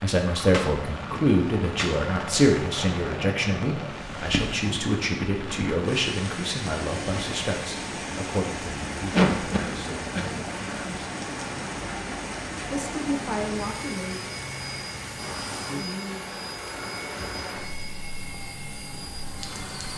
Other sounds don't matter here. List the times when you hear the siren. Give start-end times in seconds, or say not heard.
not heard.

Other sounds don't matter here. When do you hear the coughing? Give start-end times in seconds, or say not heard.
9.1-10.9.